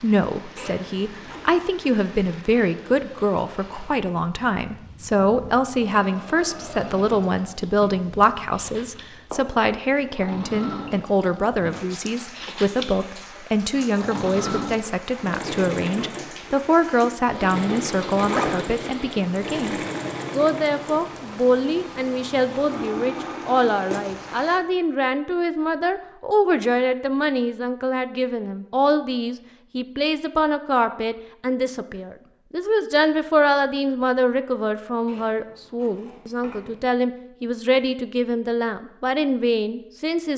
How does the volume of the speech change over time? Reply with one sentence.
The volume of the speech stays about the same.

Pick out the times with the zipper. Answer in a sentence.
The zipper can be heard from 0.6 to 1.6 s, from 17.7 to 18.9 s and from 35.0 to 36.8 s.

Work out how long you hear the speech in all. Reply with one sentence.
You can hear the speech for 40 seconds altogether.